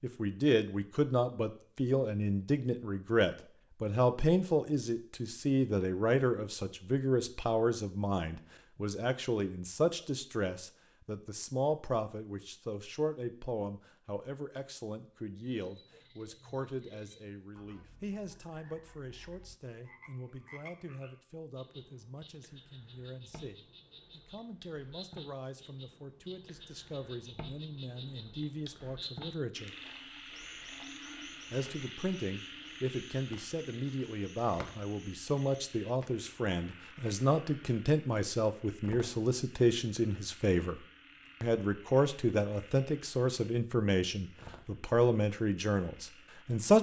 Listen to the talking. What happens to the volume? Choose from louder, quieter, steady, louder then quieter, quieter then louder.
quieter then louder.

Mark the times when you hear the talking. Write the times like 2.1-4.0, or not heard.
0.0-29.8, 31.5-40.8, 41.4-46.7.